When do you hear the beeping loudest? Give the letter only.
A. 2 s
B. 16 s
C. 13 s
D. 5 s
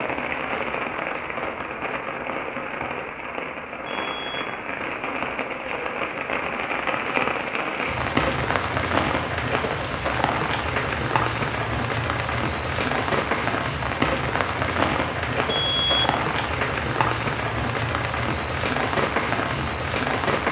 B.